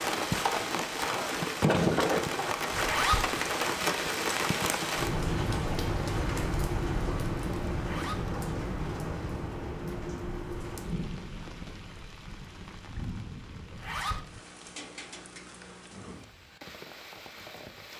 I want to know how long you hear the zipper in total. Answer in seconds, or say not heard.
2 s.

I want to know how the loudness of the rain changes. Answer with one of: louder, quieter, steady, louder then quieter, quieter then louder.
quieter.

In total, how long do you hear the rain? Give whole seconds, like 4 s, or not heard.
18 s.